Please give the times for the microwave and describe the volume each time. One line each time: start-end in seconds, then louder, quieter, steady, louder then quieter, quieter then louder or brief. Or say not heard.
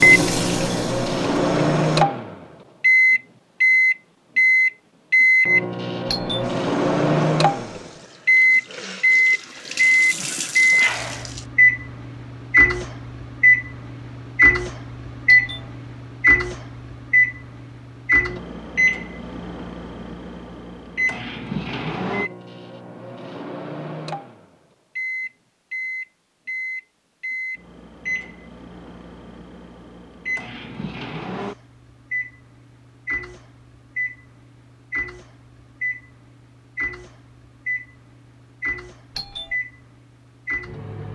0.0-41.1 quieter.